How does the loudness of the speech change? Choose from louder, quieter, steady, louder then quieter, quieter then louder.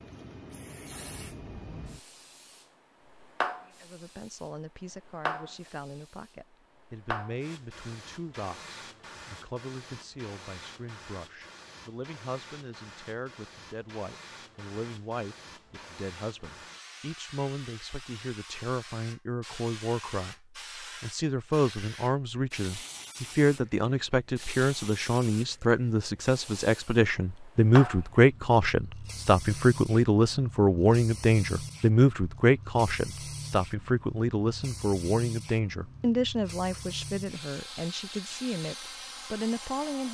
louder then quieter.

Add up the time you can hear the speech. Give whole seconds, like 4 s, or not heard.
36 s.